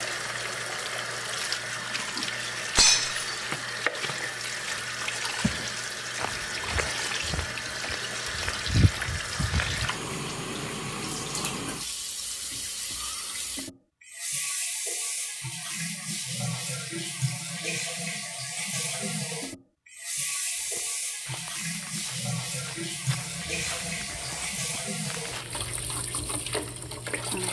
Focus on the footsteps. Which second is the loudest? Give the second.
9 s.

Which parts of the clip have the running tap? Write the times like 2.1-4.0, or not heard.
0.0-27.4.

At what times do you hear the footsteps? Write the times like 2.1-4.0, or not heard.
4.7-9.9, 20.6-25.6.